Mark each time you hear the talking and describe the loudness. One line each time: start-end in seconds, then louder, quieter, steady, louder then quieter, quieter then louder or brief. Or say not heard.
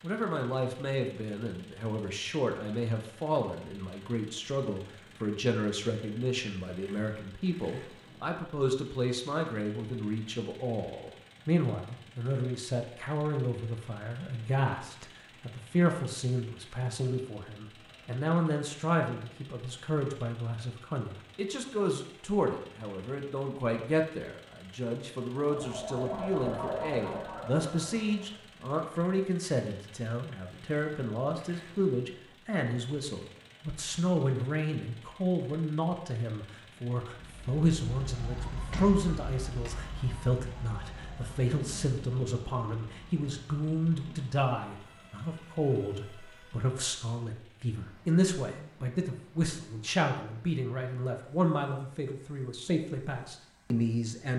0.0-54.3 steady.